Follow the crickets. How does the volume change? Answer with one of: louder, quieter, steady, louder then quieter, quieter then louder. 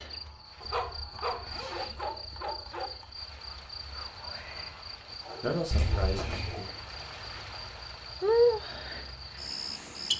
louder.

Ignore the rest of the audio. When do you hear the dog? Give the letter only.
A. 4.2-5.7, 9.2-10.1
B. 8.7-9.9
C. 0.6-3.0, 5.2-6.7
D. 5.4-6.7
C.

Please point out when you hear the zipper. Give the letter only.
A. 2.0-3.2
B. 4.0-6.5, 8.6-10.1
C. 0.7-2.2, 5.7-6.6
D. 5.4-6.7
C.